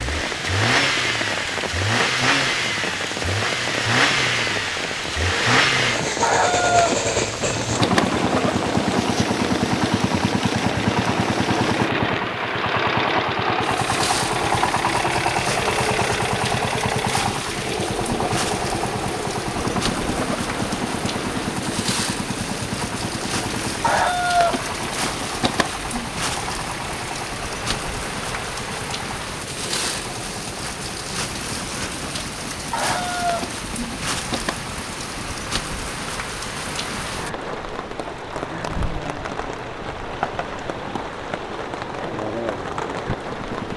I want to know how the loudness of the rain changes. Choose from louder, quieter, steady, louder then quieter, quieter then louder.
steady.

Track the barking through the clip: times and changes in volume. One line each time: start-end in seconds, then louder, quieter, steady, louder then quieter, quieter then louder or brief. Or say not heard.
not heard.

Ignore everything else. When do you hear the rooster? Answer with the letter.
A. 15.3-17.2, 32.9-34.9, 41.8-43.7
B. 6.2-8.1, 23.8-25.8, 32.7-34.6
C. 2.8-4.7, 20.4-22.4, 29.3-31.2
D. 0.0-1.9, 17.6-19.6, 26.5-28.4
B.